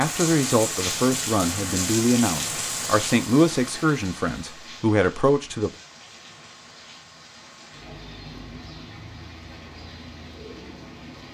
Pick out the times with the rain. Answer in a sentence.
The rain can be heard from 0.0 to 11.3 s.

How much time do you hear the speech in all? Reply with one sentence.
The speech can be heard for 6 seconds in total.